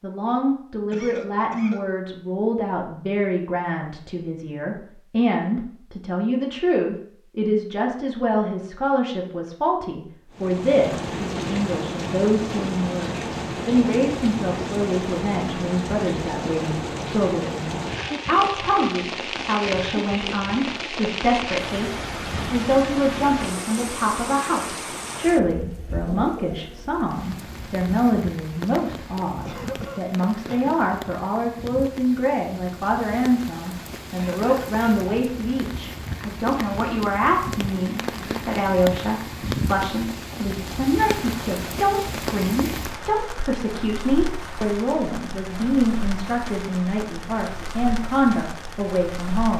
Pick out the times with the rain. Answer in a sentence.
You can hear the rain from 10.3 to 49.5 s.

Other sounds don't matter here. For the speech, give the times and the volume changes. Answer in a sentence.
You can hear the speech from 0.0 to 49.5 s, at a steady volume.